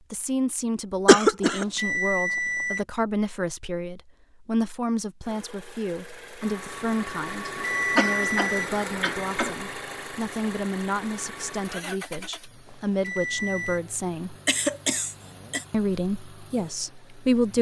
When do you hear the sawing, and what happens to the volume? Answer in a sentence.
You can't hear the sawing here.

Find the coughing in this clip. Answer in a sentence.
You can hear the coughing from 1.1 to 1.6 s, from 7.5 to 9.6 s and from 14.4 to 15.7 s.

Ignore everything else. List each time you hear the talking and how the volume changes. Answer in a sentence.
The talking can be heard from 0.1 to 14.3 s, at a steady volume; and briefly from 15.7 to 17.5 s.